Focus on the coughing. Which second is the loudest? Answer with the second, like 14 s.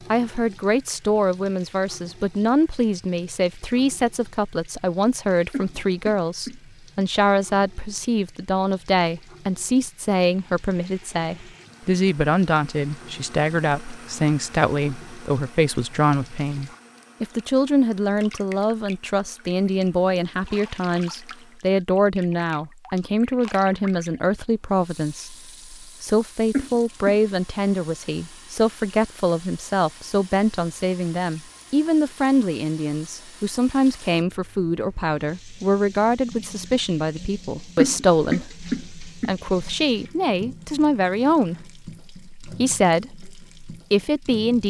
38 s.